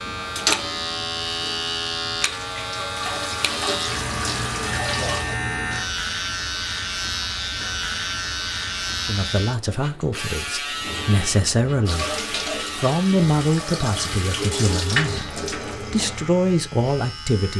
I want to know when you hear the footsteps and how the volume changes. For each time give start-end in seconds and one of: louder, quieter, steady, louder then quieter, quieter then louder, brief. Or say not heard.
not heard.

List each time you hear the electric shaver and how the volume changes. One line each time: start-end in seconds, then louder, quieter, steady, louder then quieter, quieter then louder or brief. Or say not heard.
0.0-17.5 quieter.